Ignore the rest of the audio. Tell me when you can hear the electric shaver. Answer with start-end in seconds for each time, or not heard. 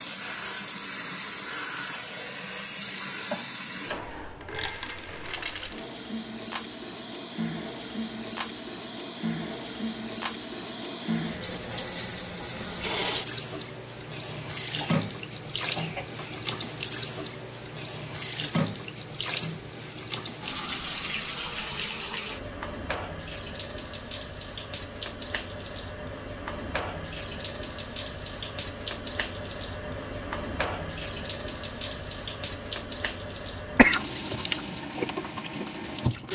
not heard.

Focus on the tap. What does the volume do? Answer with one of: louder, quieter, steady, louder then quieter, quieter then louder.
steady.